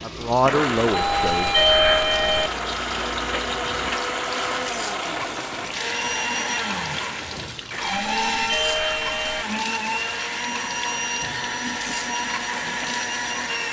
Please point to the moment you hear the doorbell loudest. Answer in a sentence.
The volume of the doorbell peaks at 2 seconds.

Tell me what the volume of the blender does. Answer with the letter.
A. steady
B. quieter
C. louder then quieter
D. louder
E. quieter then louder
A.